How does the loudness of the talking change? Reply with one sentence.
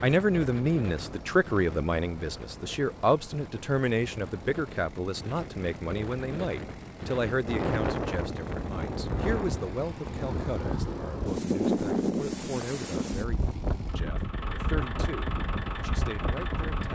The loudness of the talking goes down.